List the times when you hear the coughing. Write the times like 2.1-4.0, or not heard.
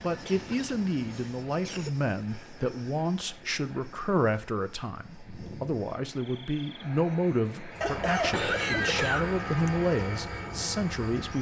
0.2-1.9, 7.8-9.7.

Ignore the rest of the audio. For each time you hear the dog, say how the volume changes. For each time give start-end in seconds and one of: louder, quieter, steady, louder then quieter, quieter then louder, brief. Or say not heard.
not heard.